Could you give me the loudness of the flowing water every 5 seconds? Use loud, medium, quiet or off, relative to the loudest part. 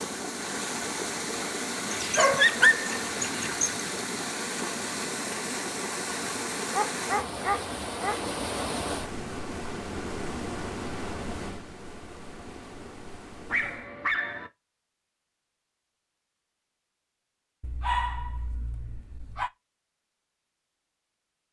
loud, loud, medium, off, off.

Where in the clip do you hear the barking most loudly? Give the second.
3 s.